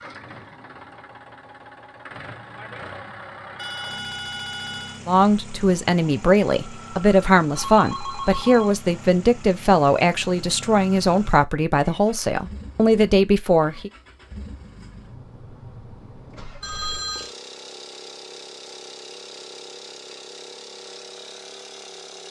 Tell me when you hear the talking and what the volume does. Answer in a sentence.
The talking can be heard from 5.0 to 13.9 s, at a steady volume.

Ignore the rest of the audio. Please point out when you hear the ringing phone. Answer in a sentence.
The ringing phone can be heard from 3.5 to 5.0 s, from 7.5 to 8.8 s and from 16.6 to 17.3 s.